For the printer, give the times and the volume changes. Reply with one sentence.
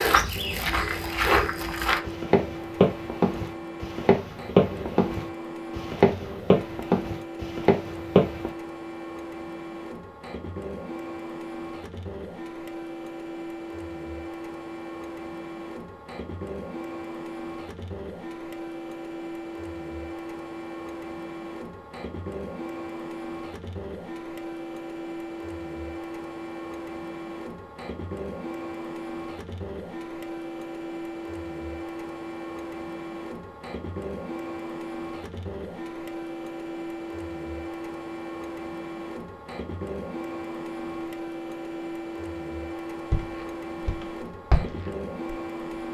You can hear the printer from 0.1 to 45.9 s, at a steady volume.